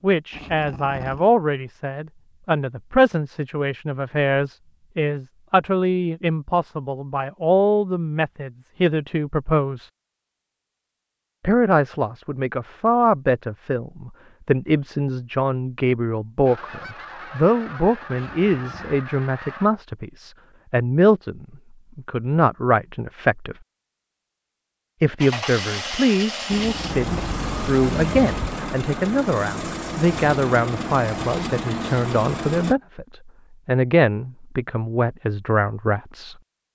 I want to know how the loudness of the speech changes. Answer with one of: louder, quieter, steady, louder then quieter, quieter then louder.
steady.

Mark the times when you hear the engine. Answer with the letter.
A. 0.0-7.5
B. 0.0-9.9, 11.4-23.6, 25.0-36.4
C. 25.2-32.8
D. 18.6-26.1
C.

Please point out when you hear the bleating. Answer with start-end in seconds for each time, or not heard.
not heard.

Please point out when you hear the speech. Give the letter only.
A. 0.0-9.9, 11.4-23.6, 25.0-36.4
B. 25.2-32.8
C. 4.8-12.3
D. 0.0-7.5
A.